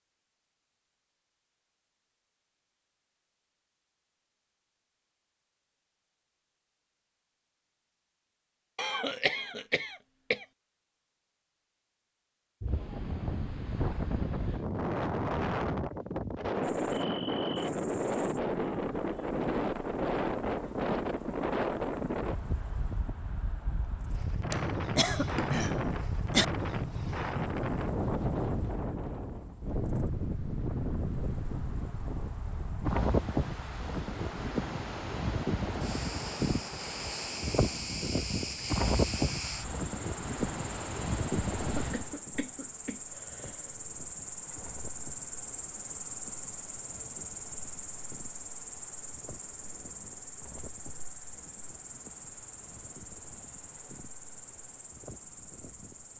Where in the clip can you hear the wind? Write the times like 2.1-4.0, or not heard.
12.6-56.1.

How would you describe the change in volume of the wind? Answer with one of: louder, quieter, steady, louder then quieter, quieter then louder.
quieter.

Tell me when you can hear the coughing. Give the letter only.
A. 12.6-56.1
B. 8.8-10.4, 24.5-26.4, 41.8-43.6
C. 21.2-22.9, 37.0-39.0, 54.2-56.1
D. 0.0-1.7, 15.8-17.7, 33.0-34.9
B.